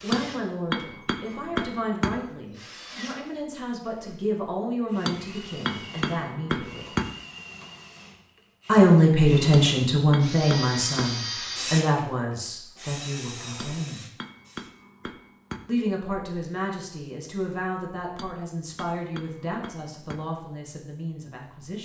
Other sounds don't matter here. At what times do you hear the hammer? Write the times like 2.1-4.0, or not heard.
0.1-2.1, 5.0-7.0, 9.5-11.2, 13.6-15.6, 18.1-20.2.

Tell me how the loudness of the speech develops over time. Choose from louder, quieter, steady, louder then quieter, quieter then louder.
louder then quieter.